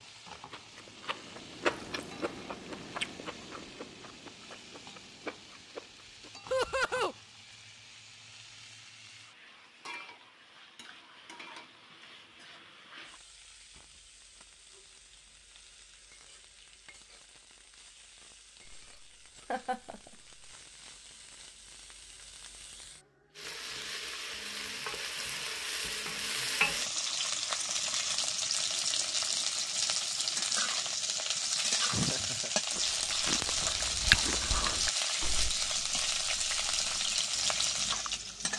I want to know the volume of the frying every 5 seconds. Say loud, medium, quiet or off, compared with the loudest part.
quiet, quiet, quiet, quiet, quiet, loud, loud, loud.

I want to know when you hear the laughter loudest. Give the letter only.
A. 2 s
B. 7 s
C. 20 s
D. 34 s
B.